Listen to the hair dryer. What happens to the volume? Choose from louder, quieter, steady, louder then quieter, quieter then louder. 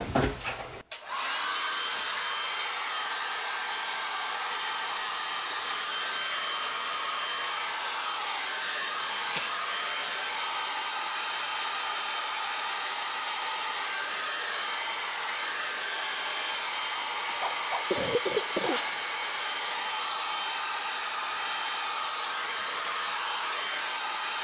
steady.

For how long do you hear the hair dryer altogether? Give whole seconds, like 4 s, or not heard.
24 s.